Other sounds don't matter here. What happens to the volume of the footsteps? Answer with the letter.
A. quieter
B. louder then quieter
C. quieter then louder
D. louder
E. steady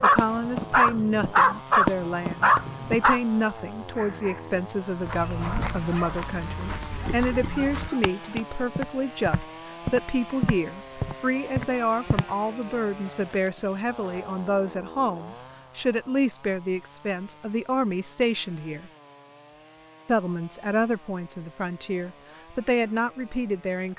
D.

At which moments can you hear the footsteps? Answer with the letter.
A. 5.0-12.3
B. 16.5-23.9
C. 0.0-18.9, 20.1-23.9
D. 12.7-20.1
A.